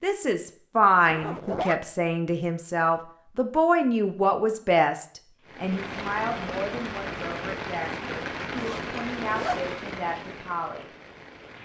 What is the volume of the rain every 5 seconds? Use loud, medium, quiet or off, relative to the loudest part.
off, loud, medium.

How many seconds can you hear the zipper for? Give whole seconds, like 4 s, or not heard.
2 s.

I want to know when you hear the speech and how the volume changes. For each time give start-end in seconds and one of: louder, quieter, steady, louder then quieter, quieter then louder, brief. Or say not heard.
0.0-10.9 quieter.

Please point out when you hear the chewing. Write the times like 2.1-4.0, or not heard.
not heard.